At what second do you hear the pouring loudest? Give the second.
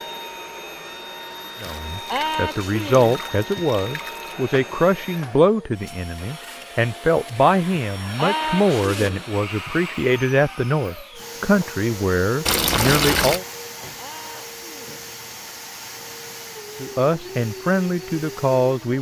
13 s.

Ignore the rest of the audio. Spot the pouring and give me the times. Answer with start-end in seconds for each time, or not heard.
1.6-4.3, 12.4-13.4.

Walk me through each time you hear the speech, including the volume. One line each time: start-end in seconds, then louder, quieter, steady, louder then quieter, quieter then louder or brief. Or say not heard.
1.6-13.4 steady
16.8-18.9 brief.